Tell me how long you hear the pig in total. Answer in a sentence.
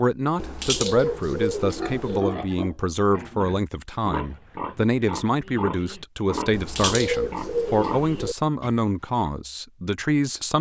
You can hear the pig for 8 seconds altogether.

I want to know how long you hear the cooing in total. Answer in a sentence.
The cooing can be heard for 4 seconds in total.